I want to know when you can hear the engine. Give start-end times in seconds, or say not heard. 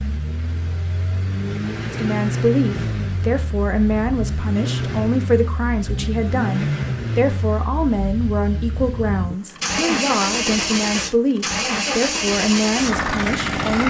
0.0-13.8.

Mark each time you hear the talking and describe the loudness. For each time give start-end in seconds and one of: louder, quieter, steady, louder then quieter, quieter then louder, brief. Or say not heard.
1.9-13.8 steady.